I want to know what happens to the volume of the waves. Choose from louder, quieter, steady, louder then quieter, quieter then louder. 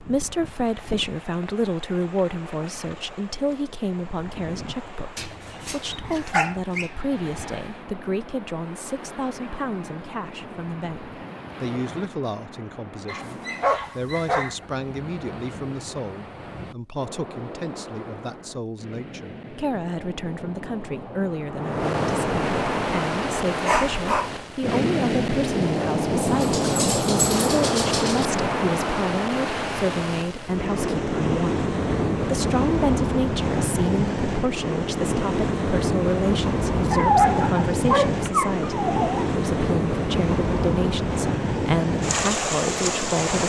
louder.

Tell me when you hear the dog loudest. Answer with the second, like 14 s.
37 s.